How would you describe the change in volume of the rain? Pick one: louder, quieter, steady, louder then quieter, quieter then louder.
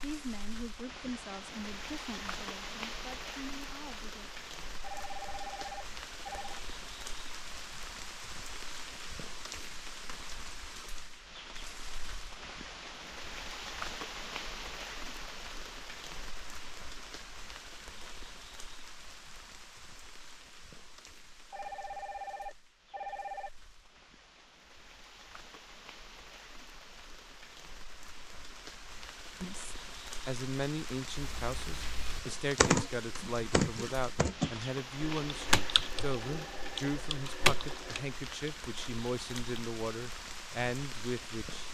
quieter then louder.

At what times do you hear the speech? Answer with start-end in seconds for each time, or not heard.
0.0-4.3, 29.4-41.6.